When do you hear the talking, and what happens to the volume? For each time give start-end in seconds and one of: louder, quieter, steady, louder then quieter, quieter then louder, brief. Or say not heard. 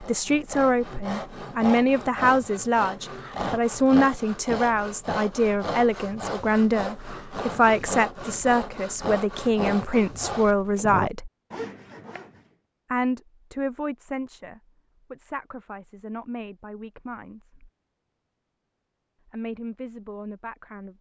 0.0-11.3 steady
12.9-17.6 quieter
19.2-20.9 brief.